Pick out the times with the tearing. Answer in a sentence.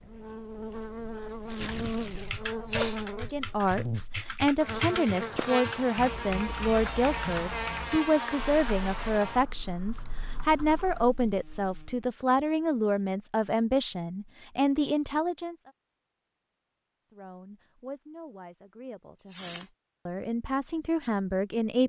The tearing can be heard from 1.4 to 2.4 s and from 19.1 to 19.7 s.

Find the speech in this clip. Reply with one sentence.
The speech can be heard from 3.1 to 15.6 s and from 17.1 to 21.8 s.